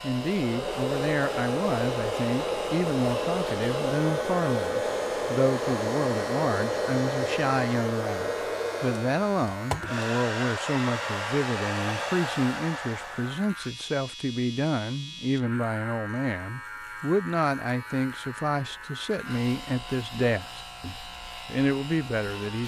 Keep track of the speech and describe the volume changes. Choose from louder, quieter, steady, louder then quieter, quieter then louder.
steady.